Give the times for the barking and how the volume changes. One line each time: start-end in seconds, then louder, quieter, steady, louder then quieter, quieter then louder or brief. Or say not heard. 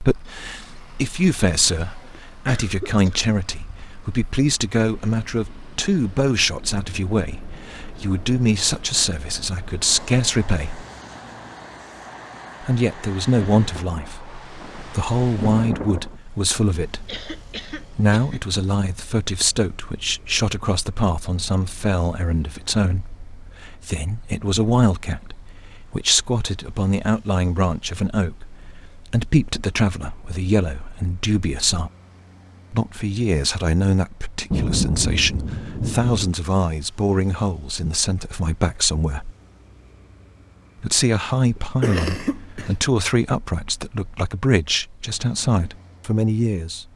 not heard.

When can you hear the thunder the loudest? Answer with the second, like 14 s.
35 s.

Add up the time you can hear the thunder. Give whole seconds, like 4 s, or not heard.
5 s.